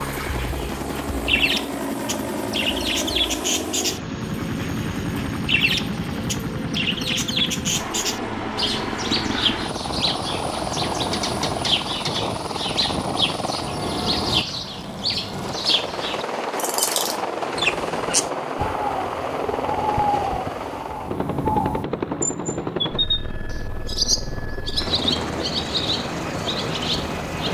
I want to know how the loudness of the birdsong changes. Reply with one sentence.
The loudness of the birdsong stays about the same.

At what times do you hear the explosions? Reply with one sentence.
The explosions can't be heard in this clip.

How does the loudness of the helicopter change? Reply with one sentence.
The loudness of the helicopter stays about the same.